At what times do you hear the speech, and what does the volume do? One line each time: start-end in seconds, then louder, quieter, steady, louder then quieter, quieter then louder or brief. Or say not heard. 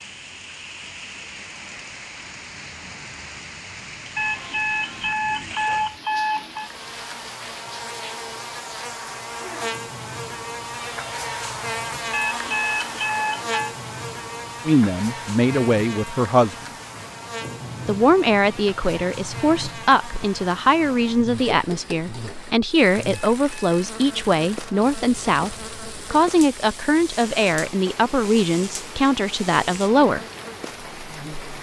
14.7-16.6 brief
17.9-30.2 steady.